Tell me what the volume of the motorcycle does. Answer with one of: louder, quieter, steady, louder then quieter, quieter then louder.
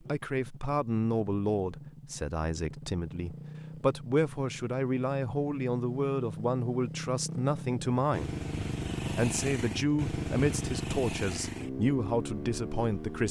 louder.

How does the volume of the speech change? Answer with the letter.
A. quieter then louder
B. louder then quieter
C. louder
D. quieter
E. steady
E.